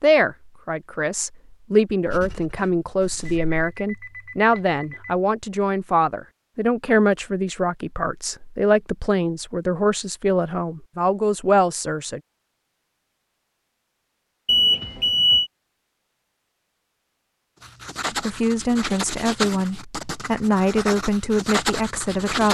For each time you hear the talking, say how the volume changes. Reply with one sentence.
The talking can be heard from 0.0 to 12.2 s, at a steady volume; and from 18.1 to 22.4 s, at a steady volume.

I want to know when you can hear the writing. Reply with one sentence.
The writing can be heard from 2.0 to 3.5 s and from 17.6 to 22.4 s.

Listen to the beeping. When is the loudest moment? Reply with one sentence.
The loudest moment of the beeping is at 15 seconds.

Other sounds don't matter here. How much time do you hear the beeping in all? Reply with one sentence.
You can hear the beeping for 3 seconds altogether.